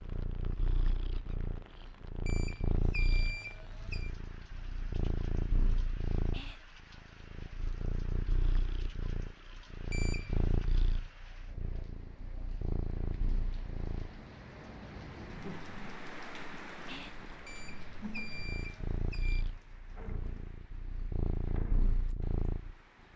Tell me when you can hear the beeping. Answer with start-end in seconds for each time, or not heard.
2.2-4.1, 9.9-10.6, 17.4-19.4.